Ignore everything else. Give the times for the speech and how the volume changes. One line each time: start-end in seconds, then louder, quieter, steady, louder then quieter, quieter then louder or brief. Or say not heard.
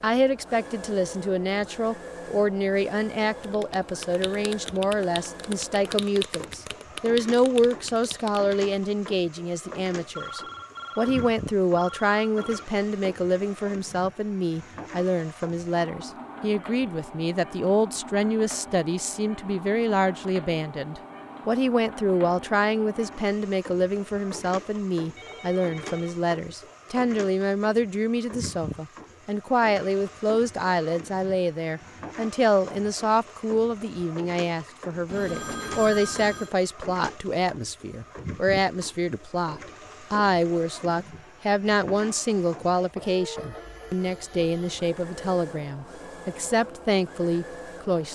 0.0-48.1 steady.